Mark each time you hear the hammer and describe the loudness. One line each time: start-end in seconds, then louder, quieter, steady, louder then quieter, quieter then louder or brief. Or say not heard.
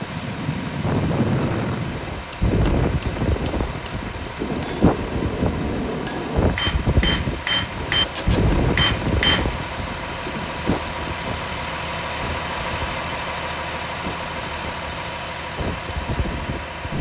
2.1-9.4 louder.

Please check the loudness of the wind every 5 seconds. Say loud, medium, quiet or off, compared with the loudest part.
loud, loud, medium, medium.